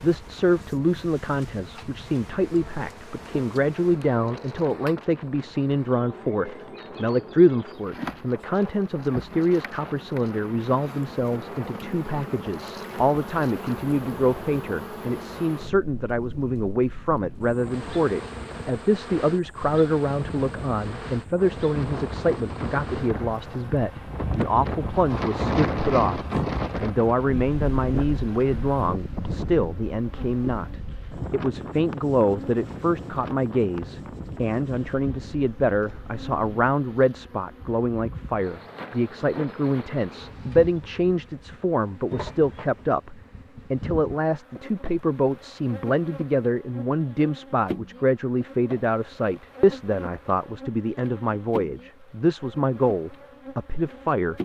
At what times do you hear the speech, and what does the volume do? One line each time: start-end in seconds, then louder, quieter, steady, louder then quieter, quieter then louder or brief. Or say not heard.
0.0-54.4 steady.